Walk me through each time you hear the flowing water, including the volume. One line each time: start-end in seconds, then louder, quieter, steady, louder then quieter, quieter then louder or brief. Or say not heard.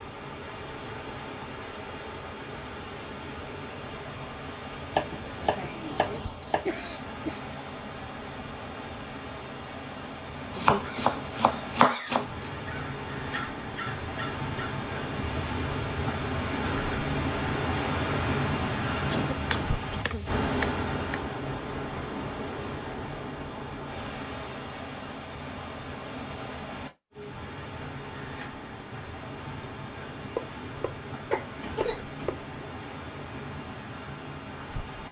0.0-35.0 louder then quieter.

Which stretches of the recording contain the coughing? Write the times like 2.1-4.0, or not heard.
5.9-7.4, 19.1-20.2, 31.3-32.7.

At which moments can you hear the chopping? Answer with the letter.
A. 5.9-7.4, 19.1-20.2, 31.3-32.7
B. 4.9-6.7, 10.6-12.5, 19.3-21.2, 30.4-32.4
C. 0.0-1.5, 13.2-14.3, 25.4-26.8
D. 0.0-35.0
B.